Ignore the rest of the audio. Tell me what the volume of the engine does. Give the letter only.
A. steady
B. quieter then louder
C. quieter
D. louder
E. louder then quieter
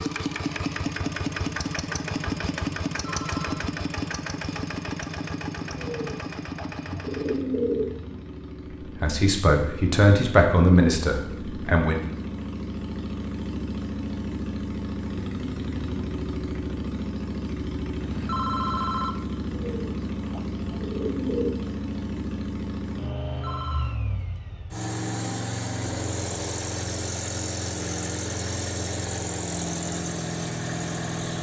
B.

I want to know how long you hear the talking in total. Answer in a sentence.
The talking can be heard for 3 seconds in total.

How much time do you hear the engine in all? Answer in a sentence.
The engine can be heard for 31 seconds in total.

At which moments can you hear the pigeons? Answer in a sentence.
You can hear the pigeons from 5.7 to 8.1 s and from 19.4 to 21.6 s.